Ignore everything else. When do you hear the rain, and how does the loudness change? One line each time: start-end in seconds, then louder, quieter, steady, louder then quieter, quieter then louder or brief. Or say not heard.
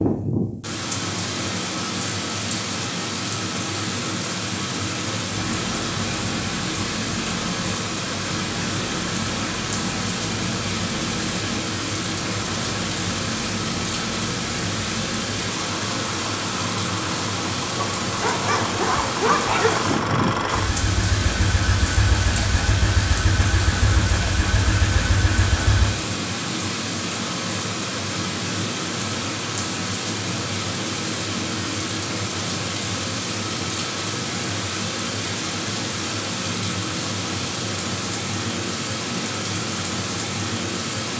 0.0-41.1 steady.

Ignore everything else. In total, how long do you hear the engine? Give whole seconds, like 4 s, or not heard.
21 s.